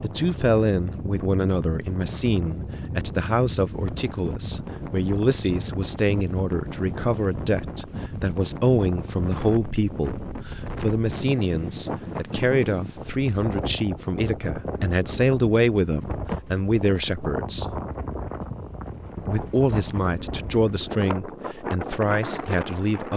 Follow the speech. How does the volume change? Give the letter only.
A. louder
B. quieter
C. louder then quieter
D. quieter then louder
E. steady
E.